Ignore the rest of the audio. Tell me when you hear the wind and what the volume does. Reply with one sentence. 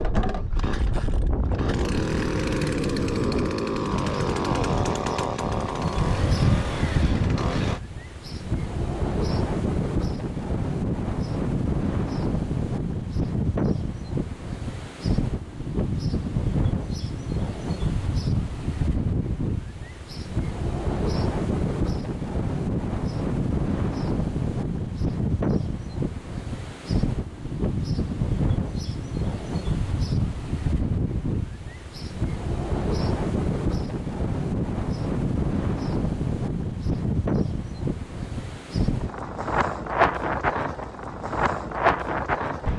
The wind can be heard from 0.0 to 42.7 s, at a steady volume.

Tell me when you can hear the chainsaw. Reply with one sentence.
You can hear the chainsaw from 0.0 to 7.8 s.